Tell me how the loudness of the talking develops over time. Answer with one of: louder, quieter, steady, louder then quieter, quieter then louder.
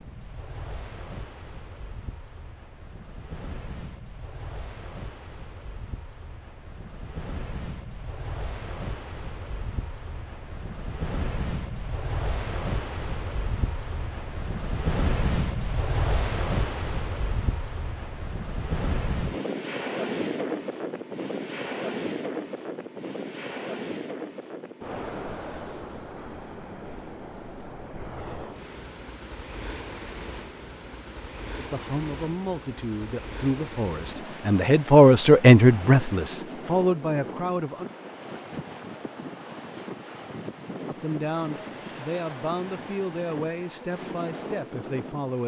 louder then quieter.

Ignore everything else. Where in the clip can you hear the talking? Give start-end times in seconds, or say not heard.
31.6-37.9, 40.9-45.4.